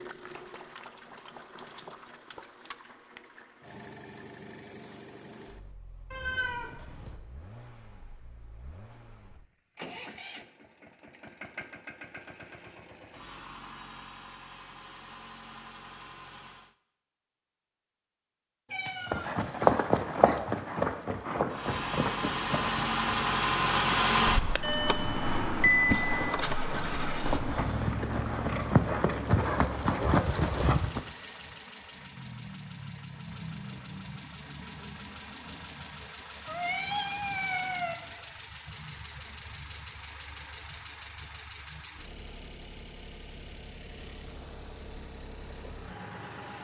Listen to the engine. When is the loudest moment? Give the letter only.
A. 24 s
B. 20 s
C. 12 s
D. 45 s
A.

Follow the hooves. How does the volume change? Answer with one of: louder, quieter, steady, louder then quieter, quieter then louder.
quieter then louder.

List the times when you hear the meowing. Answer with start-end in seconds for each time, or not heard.
6.1-7.2, 18.7-19.4, 36.5-38.0.